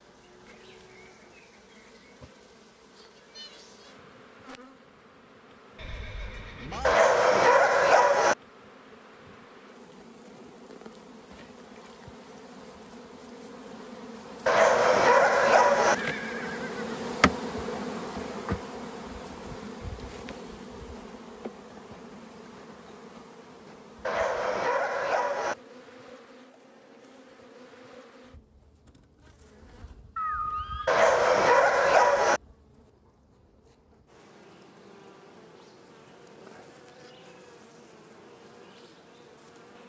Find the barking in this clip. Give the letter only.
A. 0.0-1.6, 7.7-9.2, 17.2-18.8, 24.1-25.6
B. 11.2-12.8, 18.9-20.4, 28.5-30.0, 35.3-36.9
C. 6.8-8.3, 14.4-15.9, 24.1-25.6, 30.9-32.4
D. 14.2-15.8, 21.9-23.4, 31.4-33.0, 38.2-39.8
C.